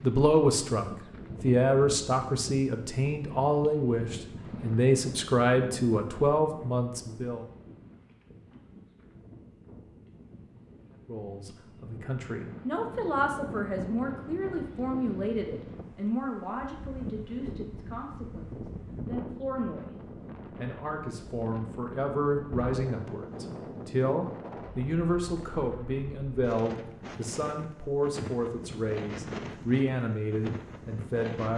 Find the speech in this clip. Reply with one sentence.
The speech can be heard from 0.0 to 7.5 s, from 11.1 to 19.9 s and from 20.6 to 31.5 s.